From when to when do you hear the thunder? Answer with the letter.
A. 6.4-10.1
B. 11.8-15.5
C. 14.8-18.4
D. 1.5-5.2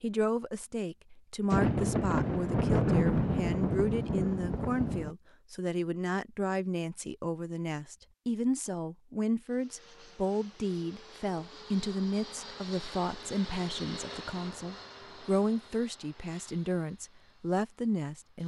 D.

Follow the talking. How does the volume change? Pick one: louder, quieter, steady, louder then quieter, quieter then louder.
steady.